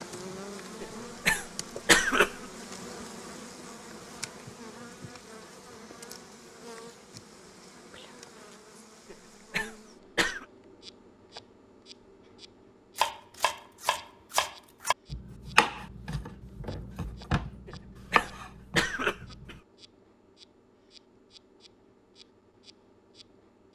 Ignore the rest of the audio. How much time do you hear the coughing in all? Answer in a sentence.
You can hear the coughing for 5 seconds altogether.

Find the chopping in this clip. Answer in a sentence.
The chopping can be heard from 12.9 to 19.6 s.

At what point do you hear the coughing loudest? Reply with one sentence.
The volume of the coughing peaks at 2 seconds.